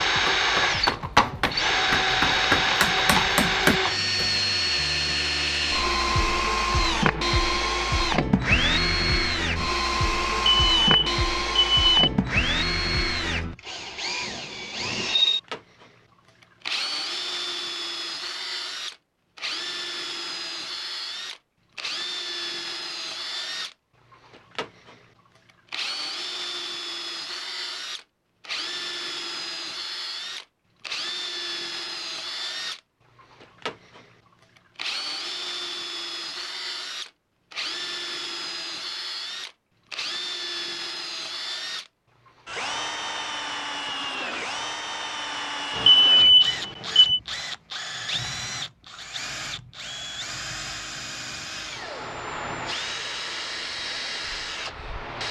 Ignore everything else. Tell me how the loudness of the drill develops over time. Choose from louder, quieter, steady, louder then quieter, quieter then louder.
quieter.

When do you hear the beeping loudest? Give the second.
46 s.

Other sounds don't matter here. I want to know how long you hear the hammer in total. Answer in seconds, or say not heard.
4 s.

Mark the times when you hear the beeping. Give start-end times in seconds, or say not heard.
10.3-12.1, 45.8-47.2.